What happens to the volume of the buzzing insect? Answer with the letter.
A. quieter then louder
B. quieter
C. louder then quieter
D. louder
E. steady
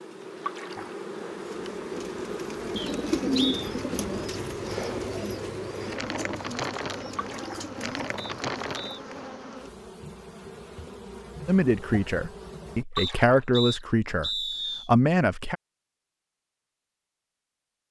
B.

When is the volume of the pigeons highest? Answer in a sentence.
The volume of the pigeons peaks at 3 seconds.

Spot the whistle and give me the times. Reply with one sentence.
You can hear the whistle from 2.8 to 3.7 s, from 8.2 to 9.0 s and from 12.9 to 14.9 s.